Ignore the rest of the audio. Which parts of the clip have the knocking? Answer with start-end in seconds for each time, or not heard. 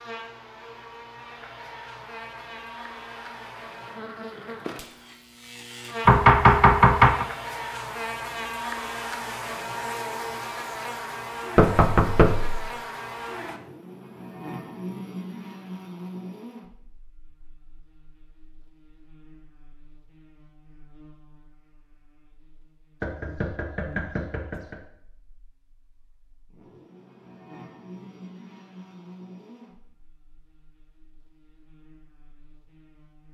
6.0-7.2, 11.6-12.7, 23.0-24.8.